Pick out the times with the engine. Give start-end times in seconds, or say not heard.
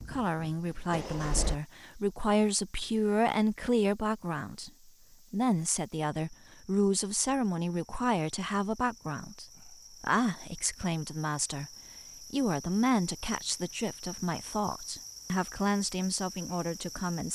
0.0-1.6.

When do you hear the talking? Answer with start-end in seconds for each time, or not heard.
0.1-11.7, 12.3-17.3.